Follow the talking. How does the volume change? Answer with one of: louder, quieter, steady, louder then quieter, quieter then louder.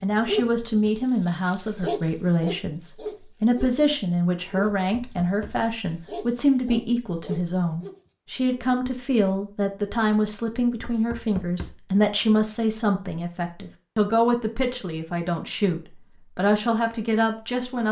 steady.